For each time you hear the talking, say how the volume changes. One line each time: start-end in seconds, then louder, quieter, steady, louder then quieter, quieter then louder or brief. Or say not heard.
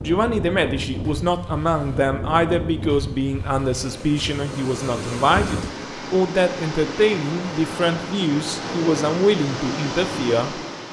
0.0-10.8 steady.